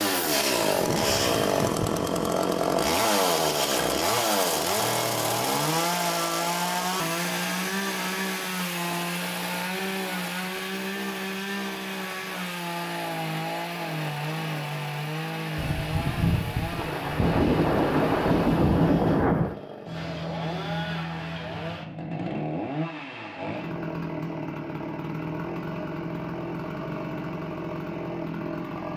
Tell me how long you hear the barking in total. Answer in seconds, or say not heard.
not heard.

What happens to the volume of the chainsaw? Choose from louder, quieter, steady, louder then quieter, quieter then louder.
quieter.